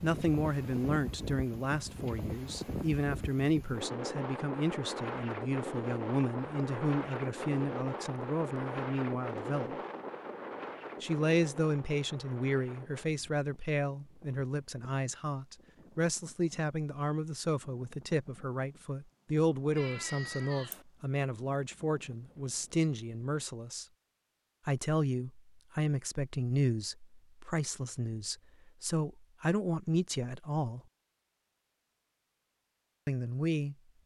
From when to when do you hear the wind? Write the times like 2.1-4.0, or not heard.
0.0-23.5.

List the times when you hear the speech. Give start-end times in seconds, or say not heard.
0.0-9.8, 11.0-23.9, 24.6-30.8, 33.0-33.8.